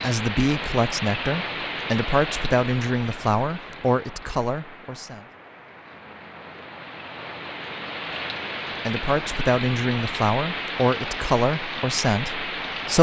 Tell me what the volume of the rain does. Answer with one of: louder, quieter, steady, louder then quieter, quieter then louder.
quieter then louder.